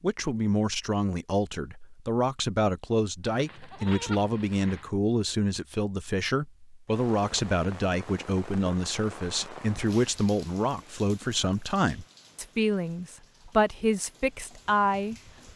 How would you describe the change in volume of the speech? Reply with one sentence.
The volume of the speech stays about the same.